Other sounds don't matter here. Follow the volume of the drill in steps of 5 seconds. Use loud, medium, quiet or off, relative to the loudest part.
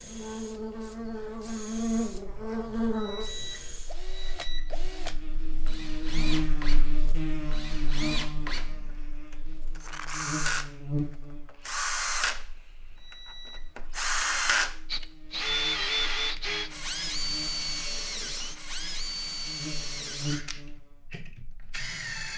quiet, medium, loud, loud, medium.